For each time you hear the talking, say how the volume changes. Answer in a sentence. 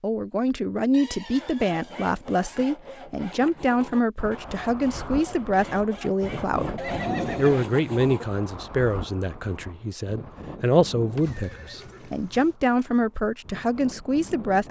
The talking can be heard from 0.0 to 14.6 s, at a steady volume.